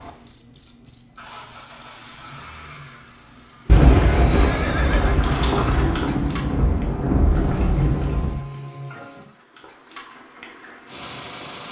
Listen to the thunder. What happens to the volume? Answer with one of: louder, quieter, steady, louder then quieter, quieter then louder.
steady.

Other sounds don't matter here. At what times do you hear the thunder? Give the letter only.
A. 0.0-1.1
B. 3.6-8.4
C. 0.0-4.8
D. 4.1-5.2
B.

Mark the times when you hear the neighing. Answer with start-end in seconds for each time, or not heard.
4.1-5.2.